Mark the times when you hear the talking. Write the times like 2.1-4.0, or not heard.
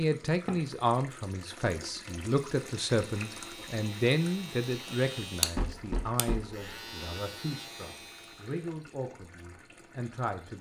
0.0-10.5.